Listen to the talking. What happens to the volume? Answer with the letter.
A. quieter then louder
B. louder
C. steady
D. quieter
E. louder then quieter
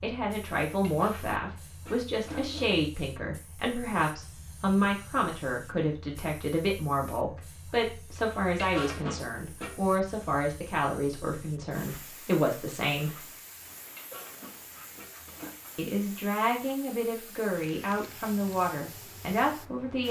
C.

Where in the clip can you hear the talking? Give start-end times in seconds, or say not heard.
0.0-13.2, 15.8-20.0.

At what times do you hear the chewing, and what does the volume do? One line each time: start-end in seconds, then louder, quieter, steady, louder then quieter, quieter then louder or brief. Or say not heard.
not heard.